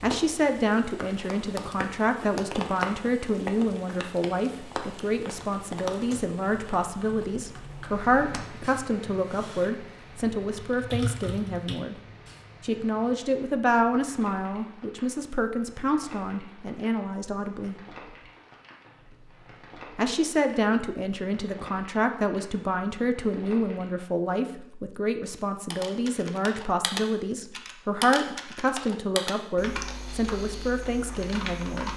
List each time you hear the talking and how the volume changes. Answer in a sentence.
The talking can be heard from 0.0 to 11.9 s, at a steady volume; from 12.6 to 17.8 s, getting quieter; and from 19.9 to 31.9 s, at a steady volume.